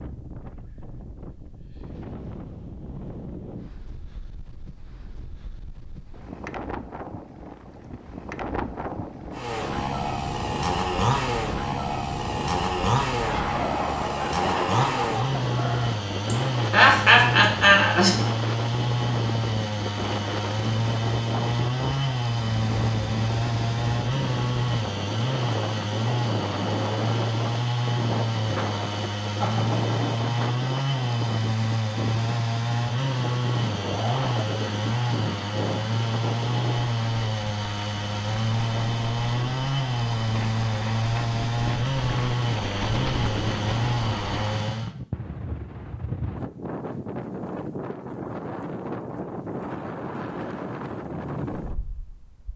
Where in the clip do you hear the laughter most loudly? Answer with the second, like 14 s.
17 s.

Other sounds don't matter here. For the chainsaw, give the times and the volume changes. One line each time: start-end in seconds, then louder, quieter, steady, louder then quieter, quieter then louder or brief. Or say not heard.
9.3-45.0 steady.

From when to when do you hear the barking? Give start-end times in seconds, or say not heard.
13.2-16.0.